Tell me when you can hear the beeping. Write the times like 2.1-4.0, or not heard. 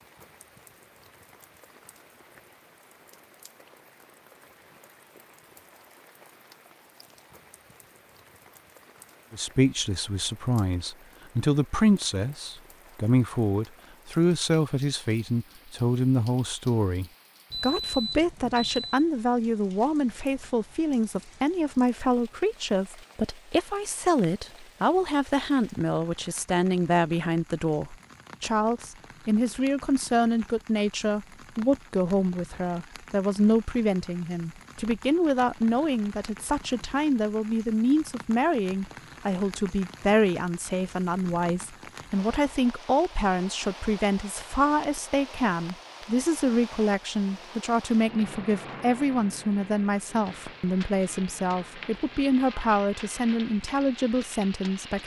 17.5-19.1.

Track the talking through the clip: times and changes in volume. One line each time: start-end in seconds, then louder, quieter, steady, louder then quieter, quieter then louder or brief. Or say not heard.
9.3-55.0 steady.